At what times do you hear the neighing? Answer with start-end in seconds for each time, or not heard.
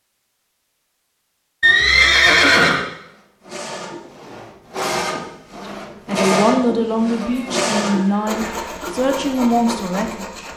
1.6-2.9, 7.2-8.8.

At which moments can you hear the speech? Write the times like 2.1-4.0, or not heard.
6.0-10.5.